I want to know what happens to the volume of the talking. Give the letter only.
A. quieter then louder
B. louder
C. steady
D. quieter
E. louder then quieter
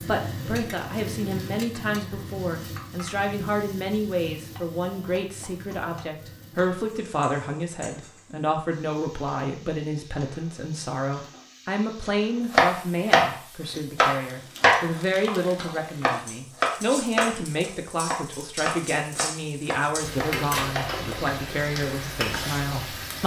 C.